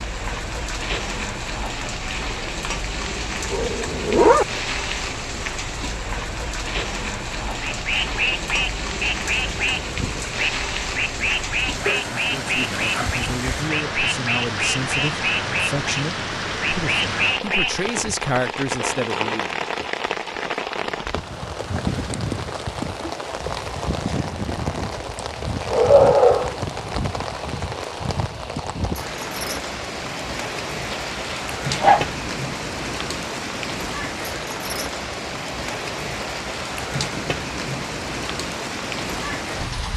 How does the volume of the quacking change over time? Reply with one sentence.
The volume of the quacking stays about the same.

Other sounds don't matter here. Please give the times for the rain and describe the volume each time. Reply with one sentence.
The rain can be heard from 0.0 to 39.9 s, at a steady volume.